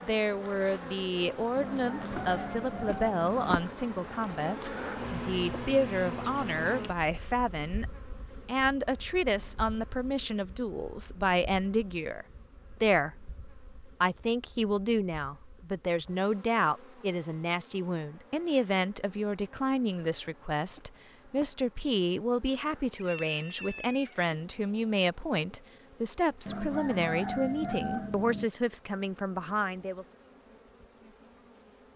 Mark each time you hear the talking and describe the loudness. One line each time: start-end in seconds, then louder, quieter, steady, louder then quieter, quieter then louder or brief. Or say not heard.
0.0-7.8 steady
8.4-30.1 steady.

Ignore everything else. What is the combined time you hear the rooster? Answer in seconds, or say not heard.
4 s.